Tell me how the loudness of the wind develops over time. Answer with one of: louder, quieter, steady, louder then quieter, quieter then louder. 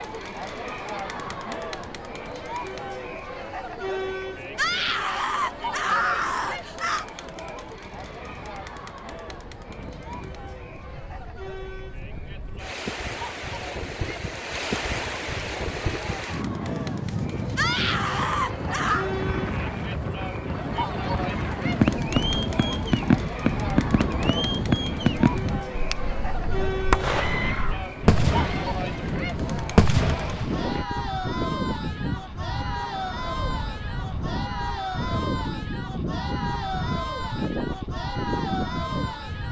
louder.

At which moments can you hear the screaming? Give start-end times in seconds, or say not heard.
4.5-7.0, 17.6-19.1, 27.1-28.6.